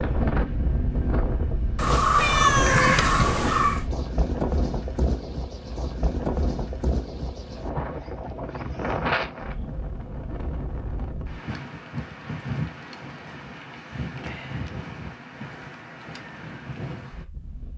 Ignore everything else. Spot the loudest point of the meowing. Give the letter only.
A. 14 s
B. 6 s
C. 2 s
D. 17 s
C.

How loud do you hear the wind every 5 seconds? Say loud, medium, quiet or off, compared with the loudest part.
loud, loud, medium, medium.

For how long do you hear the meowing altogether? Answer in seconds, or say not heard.
2 s.